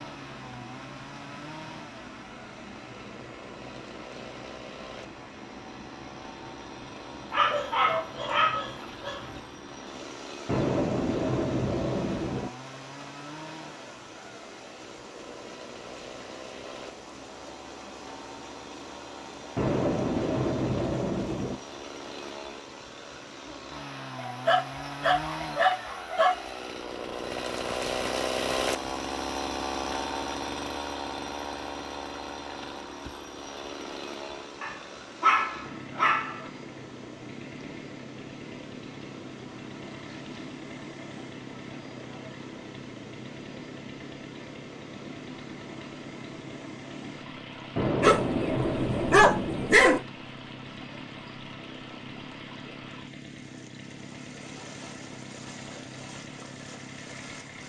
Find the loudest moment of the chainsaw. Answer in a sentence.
The volume of the chainsaw peaks at 28 seconds.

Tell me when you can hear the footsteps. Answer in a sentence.
The footsteps can't be heard in this clip.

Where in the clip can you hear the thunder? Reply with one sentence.
The thunder can be heard from 10.4 to 12.5 s, from 19.6 to 21.6 s and from 47.8 to 49.8 s.